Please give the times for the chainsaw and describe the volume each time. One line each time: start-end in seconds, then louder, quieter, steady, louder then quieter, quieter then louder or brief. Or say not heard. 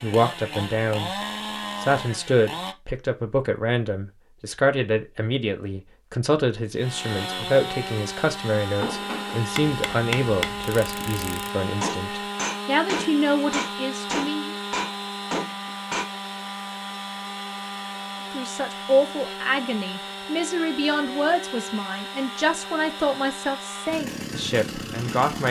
0.0-2.8 brief
6.8-25.4 steady.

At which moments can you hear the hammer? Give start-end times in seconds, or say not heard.
8.7-16.1.